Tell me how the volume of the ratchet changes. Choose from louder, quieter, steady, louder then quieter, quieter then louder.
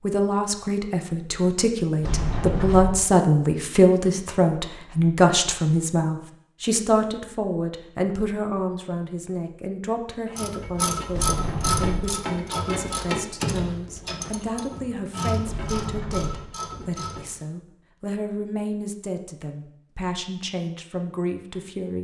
quieter.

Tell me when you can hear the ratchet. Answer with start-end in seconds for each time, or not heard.
10.3-17.4.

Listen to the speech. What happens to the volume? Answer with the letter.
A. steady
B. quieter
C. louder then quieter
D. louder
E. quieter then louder
B.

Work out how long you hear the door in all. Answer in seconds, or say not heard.
3 s.